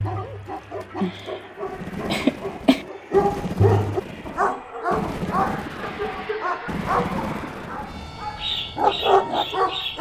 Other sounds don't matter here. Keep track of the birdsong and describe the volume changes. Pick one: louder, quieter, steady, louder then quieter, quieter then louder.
steady.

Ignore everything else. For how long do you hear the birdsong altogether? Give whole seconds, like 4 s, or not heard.
8 s.